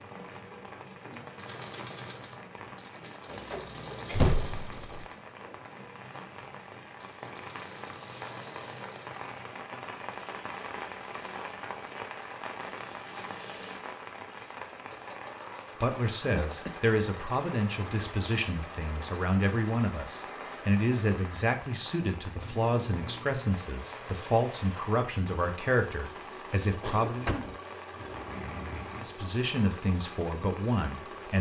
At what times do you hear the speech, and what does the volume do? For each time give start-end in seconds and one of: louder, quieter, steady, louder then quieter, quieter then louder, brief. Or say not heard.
15.8-27.3 steady
28.9-31.3 brief.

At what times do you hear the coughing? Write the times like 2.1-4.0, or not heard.
3.3-4.3, 16.4-16.8, 26.8-29.2.